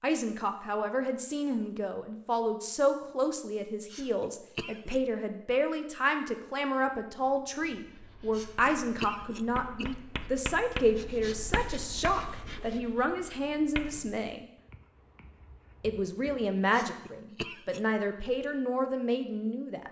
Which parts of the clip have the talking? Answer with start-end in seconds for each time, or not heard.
0.0-14.4, 15.8-19.8.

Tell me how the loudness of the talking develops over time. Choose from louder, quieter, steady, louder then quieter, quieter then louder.
steady.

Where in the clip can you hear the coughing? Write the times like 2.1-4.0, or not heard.
3.9-5.0, 8.3-9.9, 16.7-17.8.